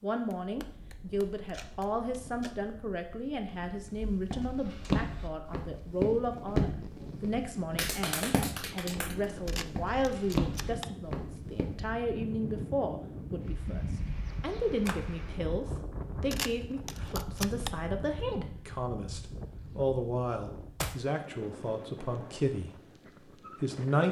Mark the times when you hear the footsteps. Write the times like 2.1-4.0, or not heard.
3.5-11.9.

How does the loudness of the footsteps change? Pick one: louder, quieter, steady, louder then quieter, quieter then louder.
quieter then louder.